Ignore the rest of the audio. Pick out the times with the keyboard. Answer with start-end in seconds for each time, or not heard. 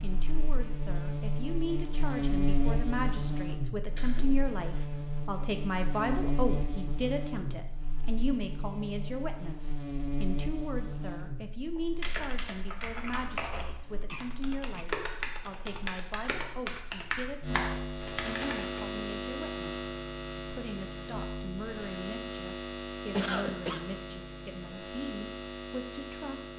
11.7-18.8.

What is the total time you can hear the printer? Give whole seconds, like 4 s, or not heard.
not heard.